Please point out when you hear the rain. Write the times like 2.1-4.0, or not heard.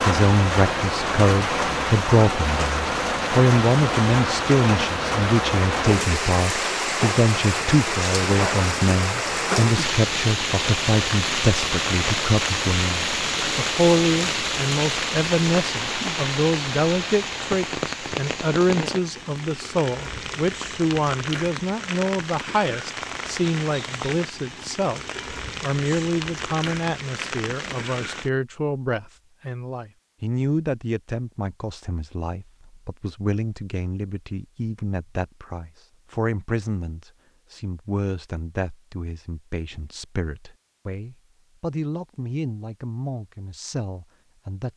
0.0-28.3.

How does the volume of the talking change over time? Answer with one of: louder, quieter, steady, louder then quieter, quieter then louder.
quieter.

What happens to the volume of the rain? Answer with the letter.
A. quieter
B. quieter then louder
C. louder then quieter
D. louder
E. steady
A.